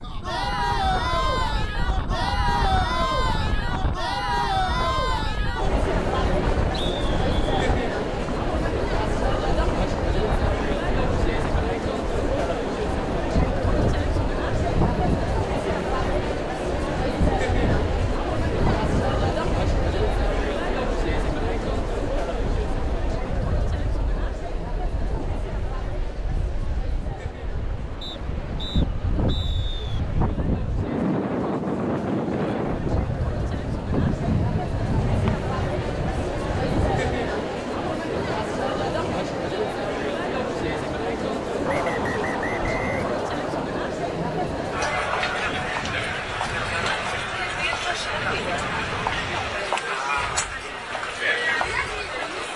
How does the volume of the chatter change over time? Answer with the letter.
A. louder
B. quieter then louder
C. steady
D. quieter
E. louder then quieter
B.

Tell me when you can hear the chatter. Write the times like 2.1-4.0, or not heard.
0.0-52.5.